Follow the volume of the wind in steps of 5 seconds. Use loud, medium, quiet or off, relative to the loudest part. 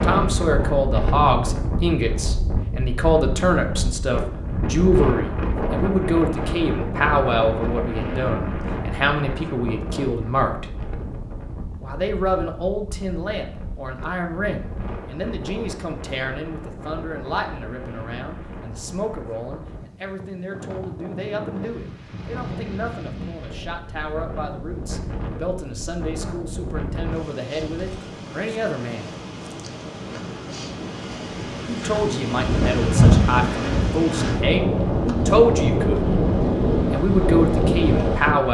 medium, medium, quiet, quiet, quiet, quiet, loud, loud.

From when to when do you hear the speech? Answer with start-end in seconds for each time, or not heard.
0.0-10.7, 11.8-29.1, 31.6-36.0, 36.9-38.4.